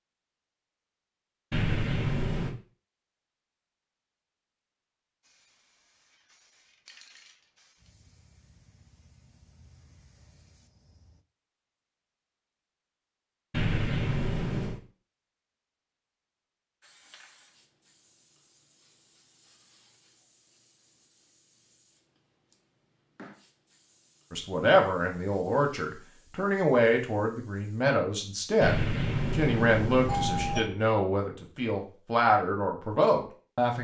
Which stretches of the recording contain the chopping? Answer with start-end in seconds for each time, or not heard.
not heard.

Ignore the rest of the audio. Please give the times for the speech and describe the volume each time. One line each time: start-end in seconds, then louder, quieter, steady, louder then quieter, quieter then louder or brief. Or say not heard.
24.3-33.8 steady.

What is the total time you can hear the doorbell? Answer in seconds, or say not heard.
4 s.